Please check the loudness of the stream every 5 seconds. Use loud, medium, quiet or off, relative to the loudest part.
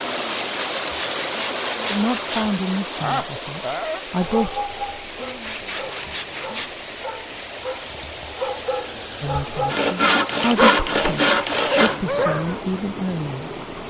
loud, medium, medium.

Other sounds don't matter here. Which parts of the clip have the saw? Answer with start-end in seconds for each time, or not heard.
0.1-2.6, 5.2-6.7, 9.7-12.2.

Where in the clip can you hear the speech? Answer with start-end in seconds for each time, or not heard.
1.9-4.6, 9.2-13.6.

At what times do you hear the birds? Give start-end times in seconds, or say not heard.
not heard.